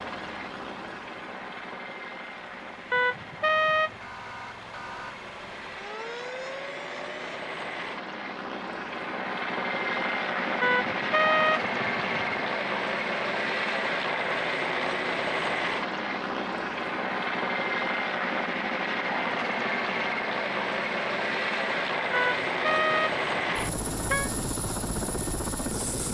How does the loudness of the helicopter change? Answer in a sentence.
The loudness of the helicopter goes up.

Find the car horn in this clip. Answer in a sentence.
You can hear the car horn from 2.9 to 4.0 s, from 10.6 to 12.4 s and from 22.1 to 24.3 s.